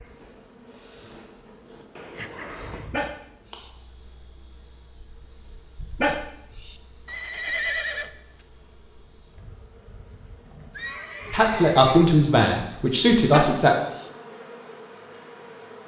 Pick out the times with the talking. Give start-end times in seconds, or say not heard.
11.3-13.8.